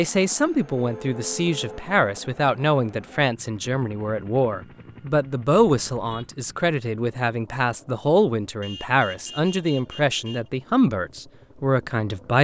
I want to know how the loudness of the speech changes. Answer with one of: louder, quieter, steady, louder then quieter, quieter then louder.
steady.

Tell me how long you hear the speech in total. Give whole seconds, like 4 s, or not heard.
12 s.